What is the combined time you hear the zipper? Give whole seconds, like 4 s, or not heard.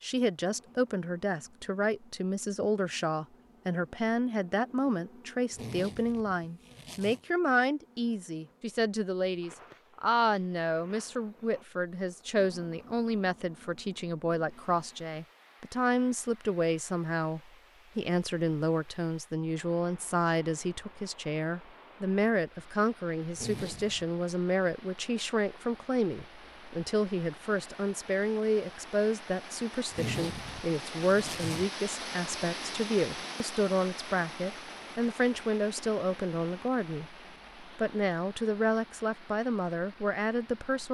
4 s.